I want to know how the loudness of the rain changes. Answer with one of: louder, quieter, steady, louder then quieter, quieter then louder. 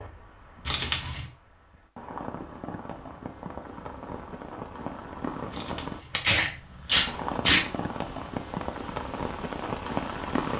louder.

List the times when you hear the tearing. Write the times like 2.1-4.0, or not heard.
0.7-1.2, 5.5-7.6.